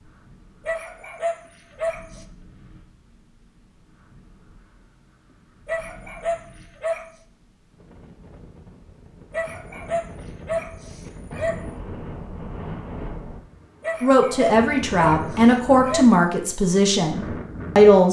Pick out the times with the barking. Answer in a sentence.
You can hear the barking from 0.7 to 2.2 s, from 5.7 to 7.0 s, from 9.3 to 11.7 s and from 13.8 to 16.2 s.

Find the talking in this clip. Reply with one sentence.
You can hear the talking from 14.0 to 18.0 s.